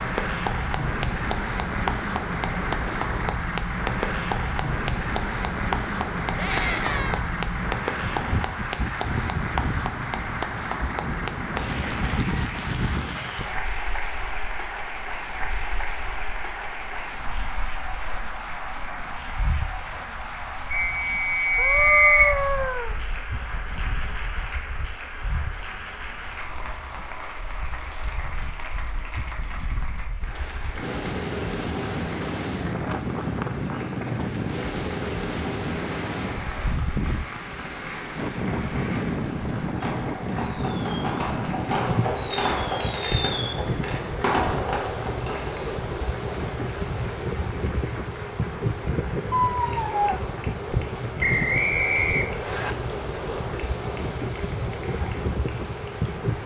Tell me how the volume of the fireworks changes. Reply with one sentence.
The loudness of the fireworks goes up.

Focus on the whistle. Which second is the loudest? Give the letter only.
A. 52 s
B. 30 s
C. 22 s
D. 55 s
C.